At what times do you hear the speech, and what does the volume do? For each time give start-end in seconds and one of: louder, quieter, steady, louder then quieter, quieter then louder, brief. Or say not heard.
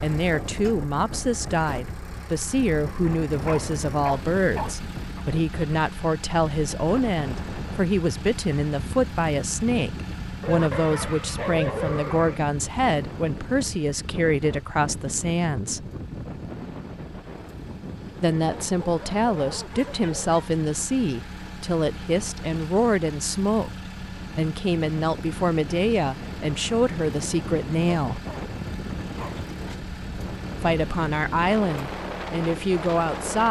0.0-15.8 steady
18.2-28.2 steady
30.6-33.4 brief.